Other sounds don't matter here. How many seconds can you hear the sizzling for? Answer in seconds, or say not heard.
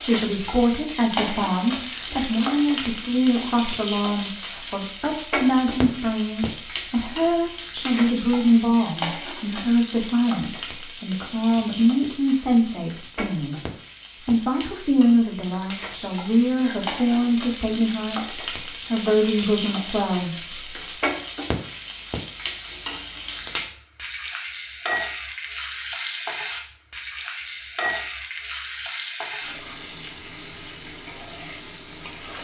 32 s.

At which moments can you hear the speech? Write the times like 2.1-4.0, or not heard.
0.0-13.7, 14.2-21.1.